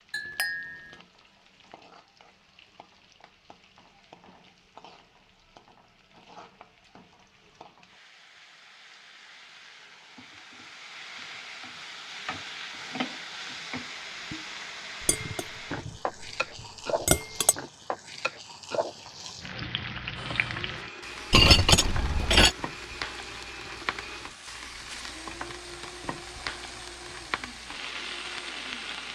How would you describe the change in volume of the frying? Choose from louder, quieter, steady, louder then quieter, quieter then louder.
louder.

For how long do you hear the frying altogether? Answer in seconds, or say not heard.
29 s.